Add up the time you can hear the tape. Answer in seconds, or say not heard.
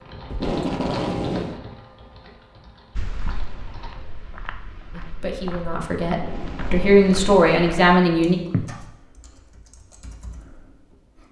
3 s.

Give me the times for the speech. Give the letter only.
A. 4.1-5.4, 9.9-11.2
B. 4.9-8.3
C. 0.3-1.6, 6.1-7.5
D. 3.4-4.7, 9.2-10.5
B.